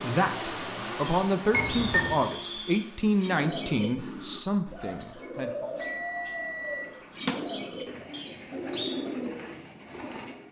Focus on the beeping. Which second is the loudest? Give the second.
2 s.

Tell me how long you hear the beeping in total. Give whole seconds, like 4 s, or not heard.
2 s.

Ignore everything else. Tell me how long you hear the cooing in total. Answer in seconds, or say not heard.
7 s.